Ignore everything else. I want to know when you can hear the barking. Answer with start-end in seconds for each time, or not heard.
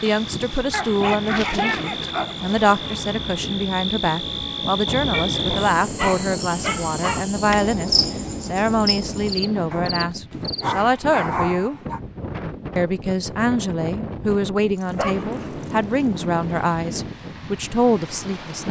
0.7-2.4, 5.1-7.2, 9.7-12.0, 14.8-16.6.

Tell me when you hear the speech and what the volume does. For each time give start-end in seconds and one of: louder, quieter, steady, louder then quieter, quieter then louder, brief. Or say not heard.
0.0-11.8 steady
12.8-18.6 steady.